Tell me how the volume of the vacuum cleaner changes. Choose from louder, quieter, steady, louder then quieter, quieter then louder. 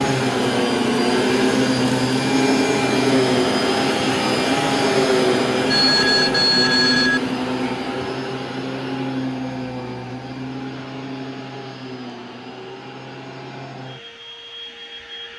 quieter.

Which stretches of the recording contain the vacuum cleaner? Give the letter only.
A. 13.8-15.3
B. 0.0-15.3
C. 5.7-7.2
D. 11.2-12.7
B.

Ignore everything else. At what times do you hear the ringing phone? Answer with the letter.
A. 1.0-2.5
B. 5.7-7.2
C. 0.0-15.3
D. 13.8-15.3
B.